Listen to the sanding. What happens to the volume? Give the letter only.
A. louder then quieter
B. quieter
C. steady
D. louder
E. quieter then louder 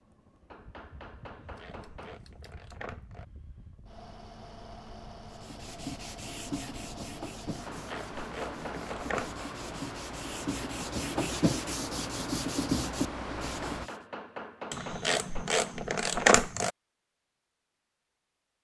E.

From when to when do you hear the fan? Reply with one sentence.
The fan can be heard from 0.0 to 13.9 s.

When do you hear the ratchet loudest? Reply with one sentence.
The volume of the ratchet peaks at 16 seconds.